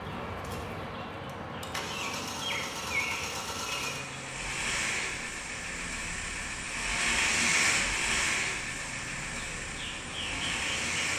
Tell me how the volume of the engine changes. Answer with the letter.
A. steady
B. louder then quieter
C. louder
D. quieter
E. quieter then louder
B.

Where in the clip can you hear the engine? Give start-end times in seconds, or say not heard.
0.0-11.1.